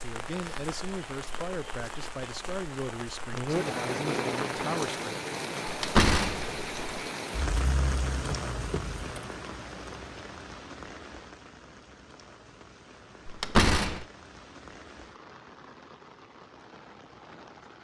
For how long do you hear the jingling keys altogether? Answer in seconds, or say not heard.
2 s.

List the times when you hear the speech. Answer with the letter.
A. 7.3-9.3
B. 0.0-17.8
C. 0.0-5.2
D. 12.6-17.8
C.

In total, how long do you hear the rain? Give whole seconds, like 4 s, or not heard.
18 s.